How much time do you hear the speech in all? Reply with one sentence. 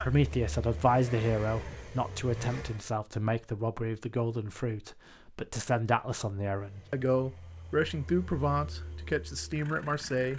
The speech can be heard for 10 seconds in total.